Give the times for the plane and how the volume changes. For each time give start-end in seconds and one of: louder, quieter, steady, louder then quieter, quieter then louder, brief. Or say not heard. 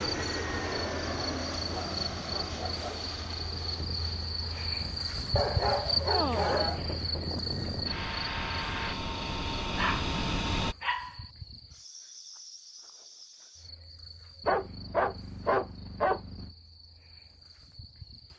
0.0-10.8 quieter then louder.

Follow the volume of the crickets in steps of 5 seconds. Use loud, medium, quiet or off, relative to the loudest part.
loud, loud, quiet, quiet.